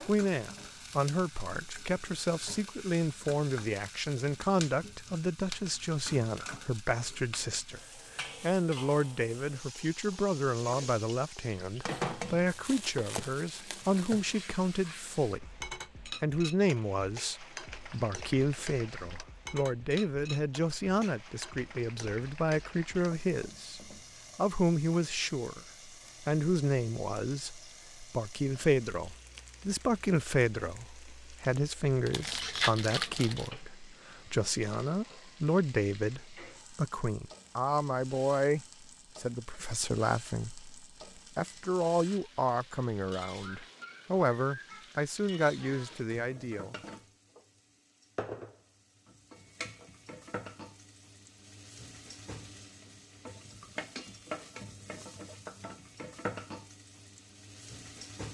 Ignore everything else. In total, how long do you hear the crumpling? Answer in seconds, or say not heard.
4 s.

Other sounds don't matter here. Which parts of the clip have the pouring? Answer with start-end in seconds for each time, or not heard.
not heard.